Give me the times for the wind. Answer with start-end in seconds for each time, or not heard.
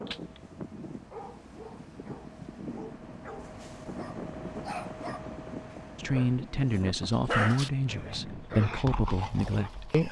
0.0-8.5.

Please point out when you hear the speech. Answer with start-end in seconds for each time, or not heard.
6.0-10.0.